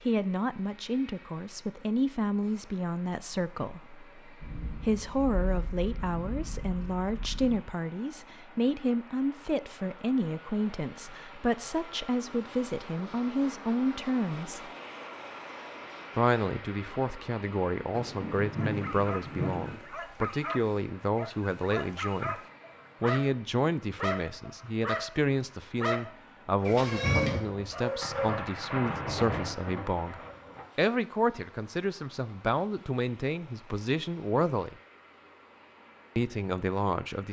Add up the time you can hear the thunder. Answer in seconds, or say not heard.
9 s.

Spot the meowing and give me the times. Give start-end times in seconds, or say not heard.
26.6-27.4.